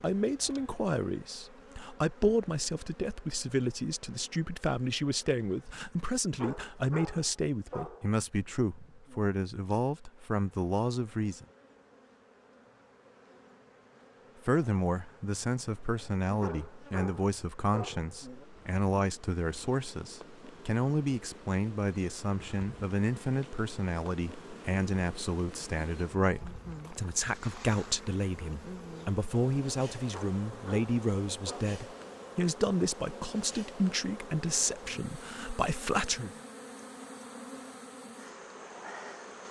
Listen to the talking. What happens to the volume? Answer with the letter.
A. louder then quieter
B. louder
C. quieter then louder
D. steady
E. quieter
D.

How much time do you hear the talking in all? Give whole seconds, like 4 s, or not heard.
33 s.